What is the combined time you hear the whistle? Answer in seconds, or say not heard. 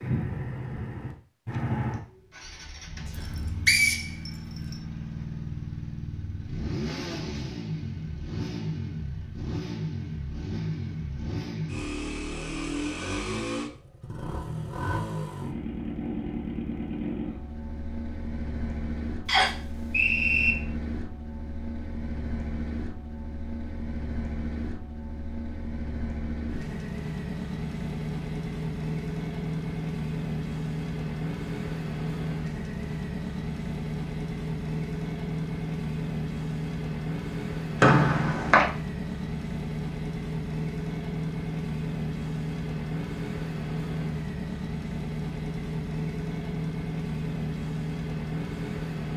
4 s.